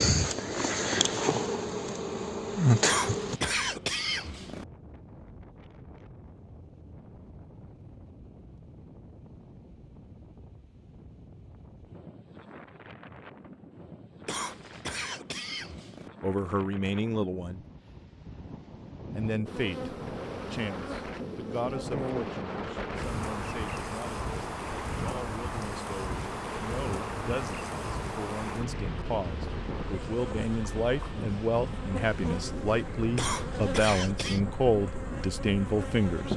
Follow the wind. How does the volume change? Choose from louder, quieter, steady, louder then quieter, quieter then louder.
louder.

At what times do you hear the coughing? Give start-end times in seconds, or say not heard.
2.8-4.7, 14.2-16.1, 33.1-34.4.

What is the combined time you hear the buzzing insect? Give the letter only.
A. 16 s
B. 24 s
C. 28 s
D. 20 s
D.